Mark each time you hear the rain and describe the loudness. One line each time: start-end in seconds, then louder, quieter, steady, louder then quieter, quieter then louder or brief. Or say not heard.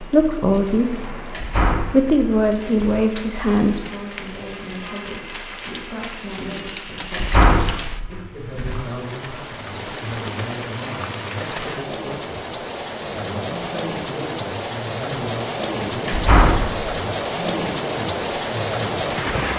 0.0-19.5 louder.